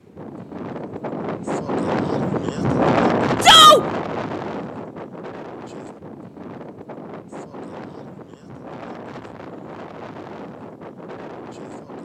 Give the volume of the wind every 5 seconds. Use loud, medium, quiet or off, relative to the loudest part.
loud, quiet, quiet.